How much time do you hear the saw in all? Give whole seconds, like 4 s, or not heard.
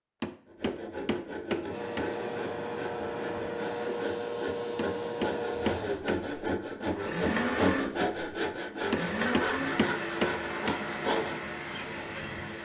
12 s.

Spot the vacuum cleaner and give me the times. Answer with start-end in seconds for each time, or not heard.
1.7-12.6.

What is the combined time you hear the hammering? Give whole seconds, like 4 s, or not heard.
5 s.